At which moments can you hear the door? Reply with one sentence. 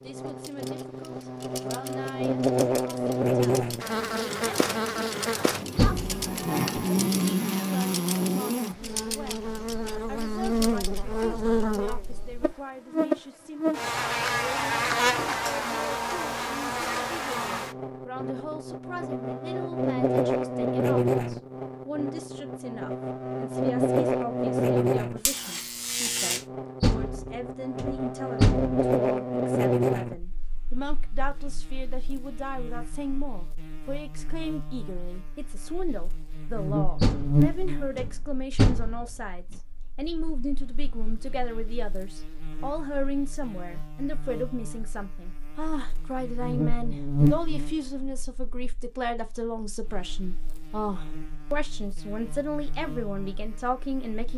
The door can be heard from 5.8 to 6.8 s, from 26.8 to 28.8 s and from 37.0 to 39.1 s.